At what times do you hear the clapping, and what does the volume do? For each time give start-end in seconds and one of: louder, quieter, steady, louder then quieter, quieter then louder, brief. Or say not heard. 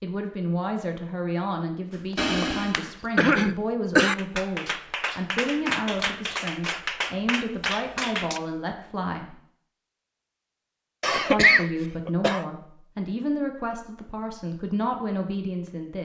1.9-8.4 louder.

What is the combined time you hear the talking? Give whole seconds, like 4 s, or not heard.
14 s.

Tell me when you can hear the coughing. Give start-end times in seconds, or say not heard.
2.1-4.2, 11.0-12.4.